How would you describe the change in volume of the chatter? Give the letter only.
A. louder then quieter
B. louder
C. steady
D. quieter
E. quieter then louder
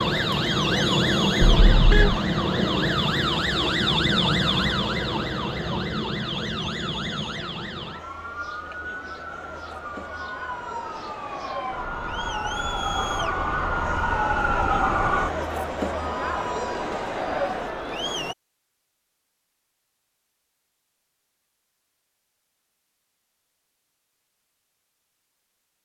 E.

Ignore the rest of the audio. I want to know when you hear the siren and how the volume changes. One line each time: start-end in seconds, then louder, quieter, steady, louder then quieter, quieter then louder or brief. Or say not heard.
0.0-15.3 quieter then louder.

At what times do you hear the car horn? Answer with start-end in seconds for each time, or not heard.
1.4-2.2.